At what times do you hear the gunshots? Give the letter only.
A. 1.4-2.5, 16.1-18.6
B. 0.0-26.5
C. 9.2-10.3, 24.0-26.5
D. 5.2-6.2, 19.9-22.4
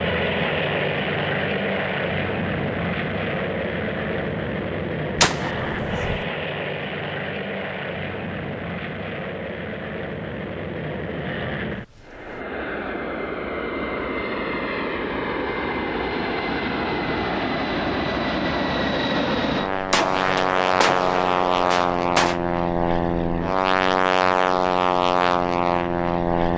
D.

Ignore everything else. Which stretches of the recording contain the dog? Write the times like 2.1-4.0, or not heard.
not heard.